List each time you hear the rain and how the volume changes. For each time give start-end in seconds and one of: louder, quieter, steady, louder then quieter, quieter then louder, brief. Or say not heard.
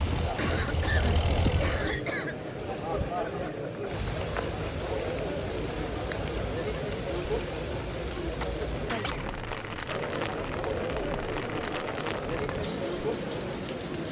0.0-14.0 steady.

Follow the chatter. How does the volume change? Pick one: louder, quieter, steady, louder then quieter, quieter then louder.
steady.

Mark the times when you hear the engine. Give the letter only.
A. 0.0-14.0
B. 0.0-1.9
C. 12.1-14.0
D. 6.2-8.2
B.